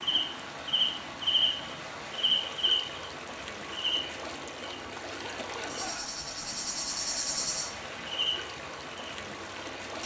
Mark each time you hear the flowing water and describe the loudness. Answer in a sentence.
The flowing water can be heard from 0.0 to 10.0 s, at a steady volume.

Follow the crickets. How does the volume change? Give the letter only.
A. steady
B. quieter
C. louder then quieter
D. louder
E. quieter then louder
E.